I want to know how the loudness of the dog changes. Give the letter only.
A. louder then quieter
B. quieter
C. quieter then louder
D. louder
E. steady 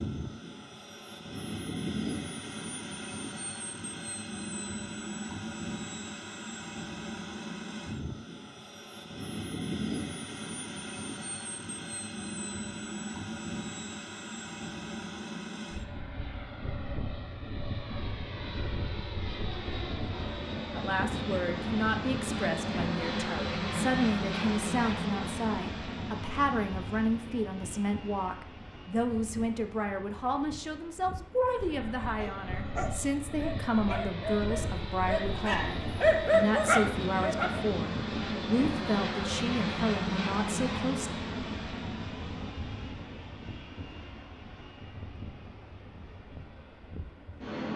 D.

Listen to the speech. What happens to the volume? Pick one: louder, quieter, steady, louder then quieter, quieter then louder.
steady.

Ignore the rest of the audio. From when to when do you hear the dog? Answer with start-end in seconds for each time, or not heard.
32.2-37.8.